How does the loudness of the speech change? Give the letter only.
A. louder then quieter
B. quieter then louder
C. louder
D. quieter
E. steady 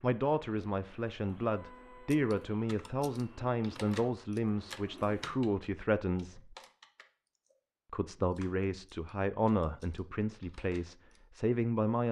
E.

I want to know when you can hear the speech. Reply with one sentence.
You can hear the speech from 0.0 to 6.5 s and from 7.9 to 12.0 s.